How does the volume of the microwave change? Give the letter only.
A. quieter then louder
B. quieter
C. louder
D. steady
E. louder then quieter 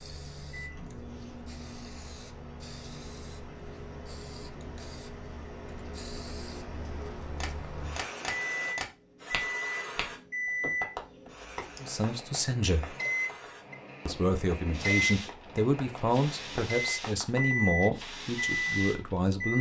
C.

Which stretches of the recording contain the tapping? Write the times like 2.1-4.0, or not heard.
7.4-17.7.